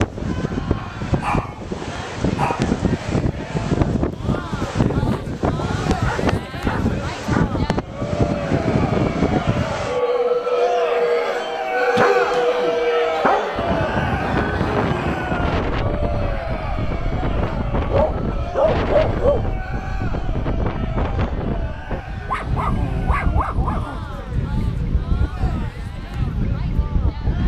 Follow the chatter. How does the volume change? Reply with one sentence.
The volume of the chatter goes up, then down.